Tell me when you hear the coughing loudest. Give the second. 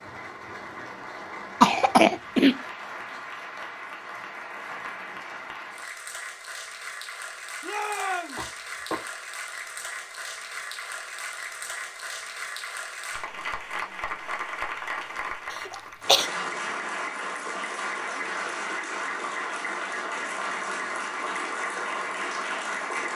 2 s.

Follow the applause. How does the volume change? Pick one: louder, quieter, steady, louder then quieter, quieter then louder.
louder.